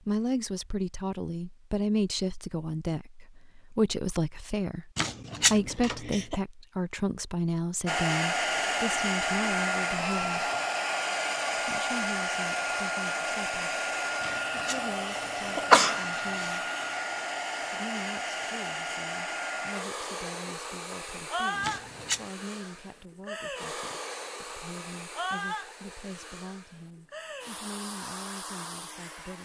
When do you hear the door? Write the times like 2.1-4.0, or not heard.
not heard.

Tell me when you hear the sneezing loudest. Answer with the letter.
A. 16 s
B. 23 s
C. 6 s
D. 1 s
A.